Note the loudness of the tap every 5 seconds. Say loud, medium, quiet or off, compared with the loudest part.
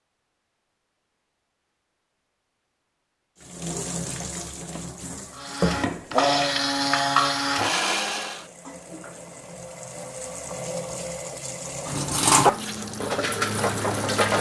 medium, medium, loud.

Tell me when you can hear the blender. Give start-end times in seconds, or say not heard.
5.3-8.4.